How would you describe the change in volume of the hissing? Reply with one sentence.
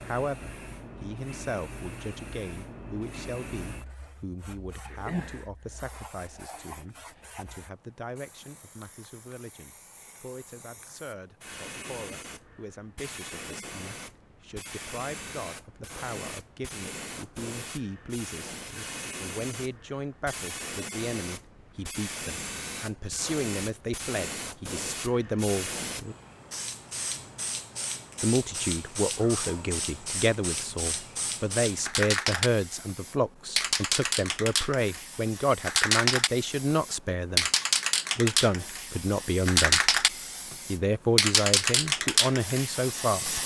The loudness of the hissing goes up.